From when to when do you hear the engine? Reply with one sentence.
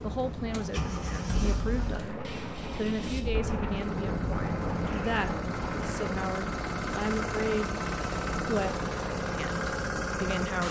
You can hear the engine from 0.0 to 10.6 s.